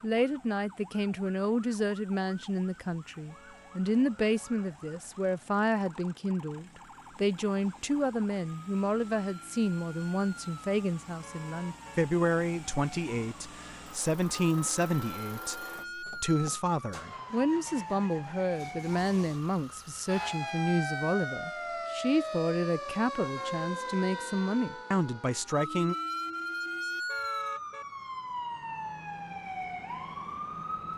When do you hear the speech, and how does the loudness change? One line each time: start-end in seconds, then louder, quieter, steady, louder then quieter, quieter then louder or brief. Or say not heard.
0.0-25.9 steady.